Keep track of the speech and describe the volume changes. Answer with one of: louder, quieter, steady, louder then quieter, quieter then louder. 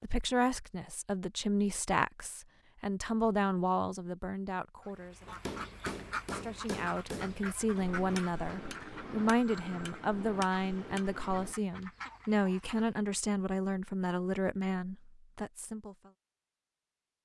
steady.